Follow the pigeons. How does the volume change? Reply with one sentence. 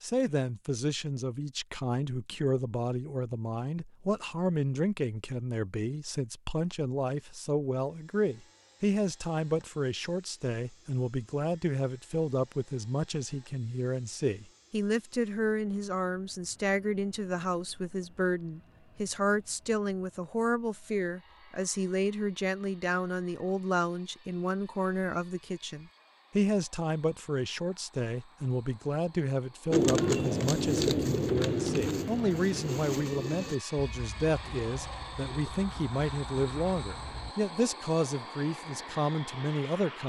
The loudness of the pigeons goes down.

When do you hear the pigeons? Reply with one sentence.
You can hear the pigeons from 29.7 to 37.4 s.